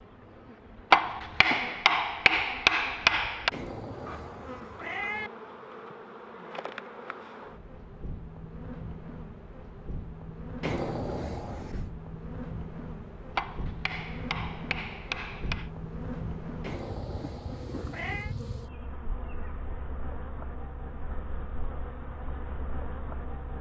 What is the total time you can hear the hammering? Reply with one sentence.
You can hear the hammering for 5 seconds altogether.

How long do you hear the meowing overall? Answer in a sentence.
You can hear the meowing for 5 seconds altogether.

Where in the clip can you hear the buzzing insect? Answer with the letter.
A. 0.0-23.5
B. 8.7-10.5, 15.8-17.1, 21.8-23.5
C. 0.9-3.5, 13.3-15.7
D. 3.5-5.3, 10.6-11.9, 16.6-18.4
A.